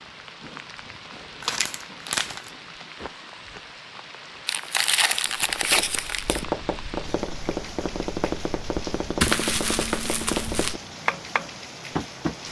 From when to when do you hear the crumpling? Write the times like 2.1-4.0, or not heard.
1.4-2.5, 4.5-6.5, 9.2-10.8.